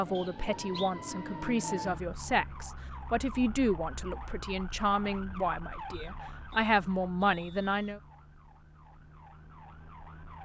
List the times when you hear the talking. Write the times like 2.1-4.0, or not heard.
0.0-8.0.